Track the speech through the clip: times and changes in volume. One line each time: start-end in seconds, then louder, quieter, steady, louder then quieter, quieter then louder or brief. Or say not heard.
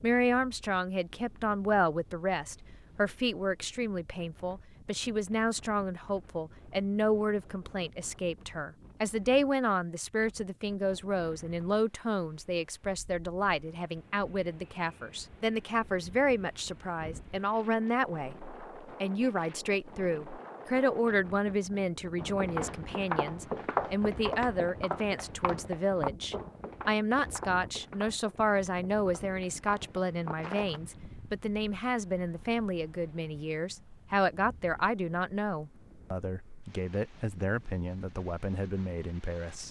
0.0-39.6 steady.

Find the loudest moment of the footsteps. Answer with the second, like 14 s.
24 s.